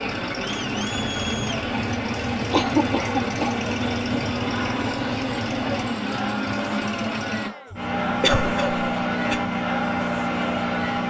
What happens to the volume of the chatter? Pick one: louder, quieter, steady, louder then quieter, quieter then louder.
steady.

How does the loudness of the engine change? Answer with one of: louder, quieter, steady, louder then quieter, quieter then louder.
steady.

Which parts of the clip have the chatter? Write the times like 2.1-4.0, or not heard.
0.0-11.0.